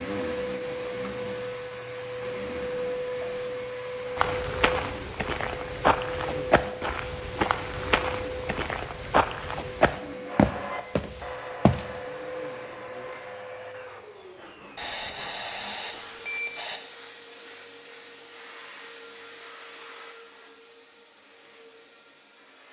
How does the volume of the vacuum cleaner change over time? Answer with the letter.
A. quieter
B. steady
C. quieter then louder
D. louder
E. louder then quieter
A.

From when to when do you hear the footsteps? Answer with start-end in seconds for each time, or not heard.
4.2-11.8.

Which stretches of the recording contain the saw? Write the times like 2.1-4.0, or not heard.
10.2-15.9.